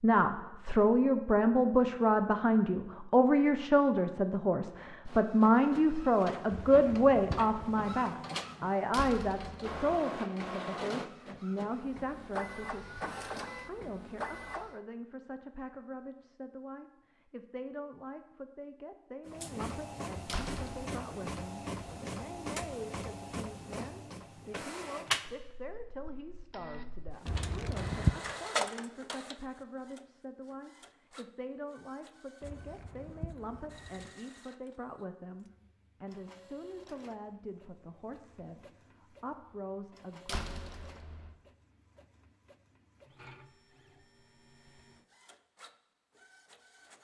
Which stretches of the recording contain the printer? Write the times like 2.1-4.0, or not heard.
5.0-14.8, 19.2-46.9.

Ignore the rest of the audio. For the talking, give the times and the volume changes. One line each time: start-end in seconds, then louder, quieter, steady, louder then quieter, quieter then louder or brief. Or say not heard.
0.0-40.4 quieter.